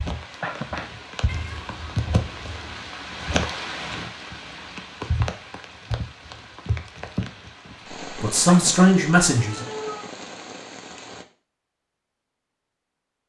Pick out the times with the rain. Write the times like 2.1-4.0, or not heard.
0.0-11.2.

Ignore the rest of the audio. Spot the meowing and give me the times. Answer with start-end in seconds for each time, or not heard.
1.2-2.9, 9.3-10.1.